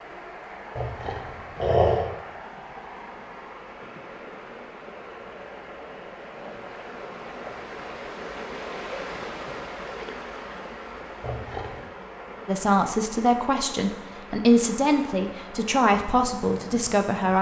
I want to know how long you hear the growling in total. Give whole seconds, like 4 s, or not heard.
2 s.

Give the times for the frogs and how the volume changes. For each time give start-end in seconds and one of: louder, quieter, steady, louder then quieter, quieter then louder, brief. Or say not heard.
not heard.